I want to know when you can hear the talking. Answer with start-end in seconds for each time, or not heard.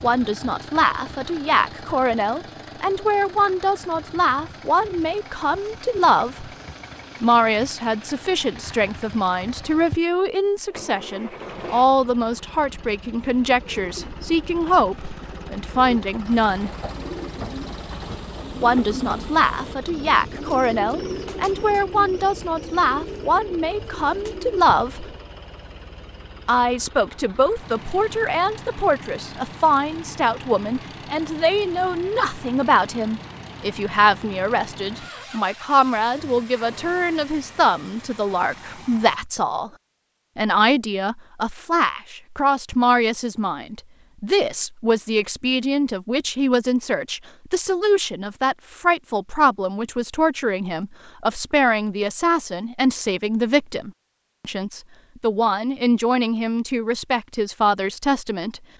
0.0-6.5, 7.2-16.7, 18.6-25.1, 26.4-39.7, 40.4-58.6.